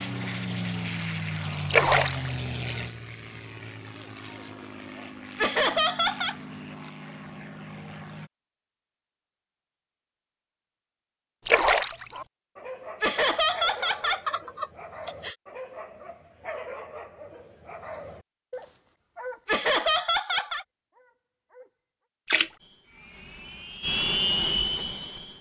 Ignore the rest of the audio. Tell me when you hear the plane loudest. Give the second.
24 s.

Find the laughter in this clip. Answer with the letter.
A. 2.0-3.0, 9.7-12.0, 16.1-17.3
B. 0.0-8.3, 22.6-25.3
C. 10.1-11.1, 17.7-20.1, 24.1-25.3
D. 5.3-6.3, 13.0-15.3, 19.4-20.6
D.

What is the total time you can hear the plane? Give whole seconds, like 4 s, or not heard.
11 s.